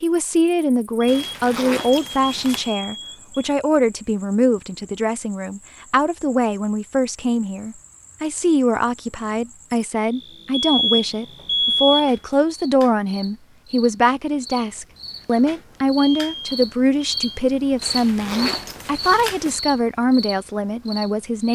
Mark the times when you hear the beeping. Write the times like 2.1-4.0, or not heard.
1.0-3.5, 10.6-12.2, 15.9-17.4.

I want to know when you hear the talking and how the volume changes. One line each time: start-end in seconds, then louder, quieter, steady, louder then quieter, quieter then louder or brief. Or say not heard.
0.0-21.5 steady.